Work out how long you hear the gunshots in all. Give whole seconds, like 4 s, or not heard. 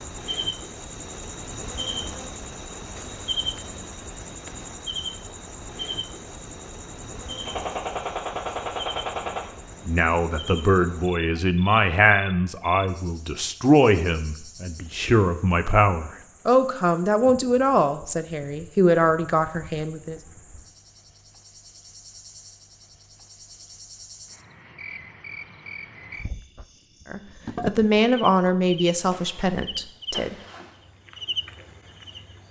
4 s.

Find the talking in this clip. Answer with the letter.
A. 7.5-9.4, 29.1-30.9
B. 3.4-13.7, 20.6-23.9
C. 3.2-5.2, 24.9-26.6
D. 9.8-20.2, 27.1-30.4
D.